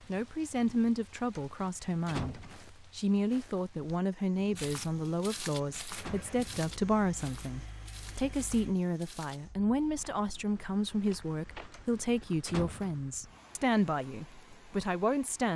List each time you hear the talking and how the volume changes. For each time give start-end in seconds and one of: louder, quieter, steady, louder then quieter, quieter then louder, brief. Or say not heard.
0.1-15.5 steady.